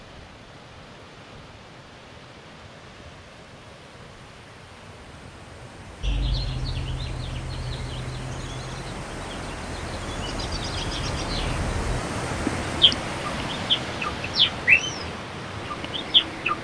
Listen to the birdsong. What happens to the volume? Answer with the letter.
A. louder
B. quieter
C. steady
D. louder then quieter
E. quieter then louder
E.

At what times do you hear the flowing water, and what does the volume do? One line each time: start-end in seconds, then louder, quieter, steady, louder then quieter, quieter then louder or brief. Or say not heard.
0.0-16.5 louder.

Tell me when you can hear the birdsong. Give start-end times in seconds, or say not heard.
6.0-16.5.